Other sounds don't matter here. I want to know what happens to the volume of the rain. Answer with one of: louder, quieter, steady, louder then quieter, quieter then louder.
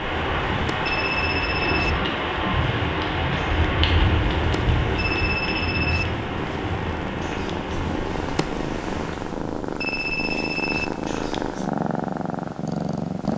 quieter.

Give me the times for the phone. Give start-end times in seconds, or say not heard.
0.8-1.9, 5.0-6.0, 9.8-10.9.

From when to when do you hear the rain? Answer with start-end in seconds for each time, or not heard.
0.0-9.3.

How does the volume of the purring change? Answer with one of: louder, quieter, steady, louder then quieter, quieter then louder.
louder.